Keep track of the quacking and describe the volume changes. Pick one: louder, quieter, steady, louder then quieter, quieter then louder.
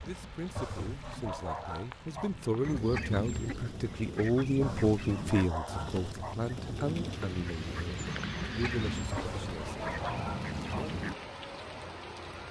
steady.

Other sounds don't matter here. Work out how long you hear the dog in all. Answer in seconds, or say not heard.
5 s.